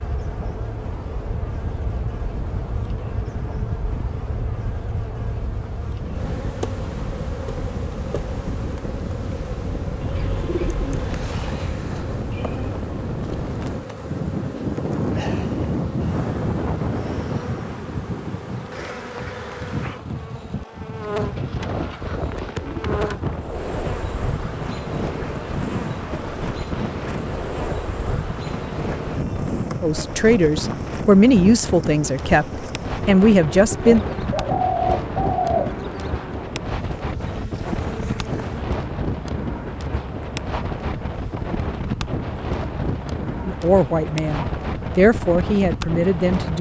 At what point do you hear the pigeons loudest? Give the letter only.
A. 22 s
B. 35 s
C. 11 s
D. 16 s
B.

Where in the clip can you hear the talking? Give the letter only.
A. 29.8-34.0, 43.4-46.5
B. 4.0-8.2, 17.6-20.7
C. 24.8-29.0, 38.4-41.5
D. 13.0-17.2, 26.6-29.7
A.